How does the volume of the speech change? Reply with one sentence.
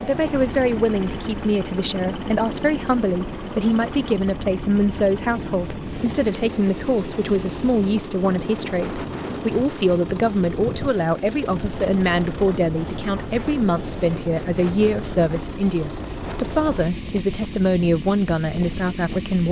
The loudness of the speech stays about the same.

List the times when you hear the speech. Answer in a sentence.
The speech can be heard from 0.0 to 19.4 s.